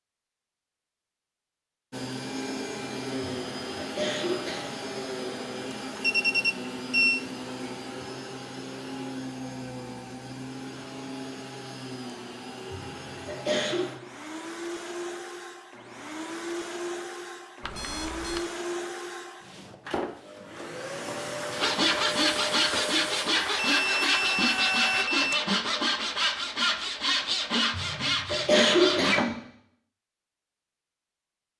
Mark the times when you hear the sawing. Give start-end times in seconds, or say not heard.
21.5-29.3.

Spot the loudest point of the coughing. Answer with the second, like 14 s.
29 s.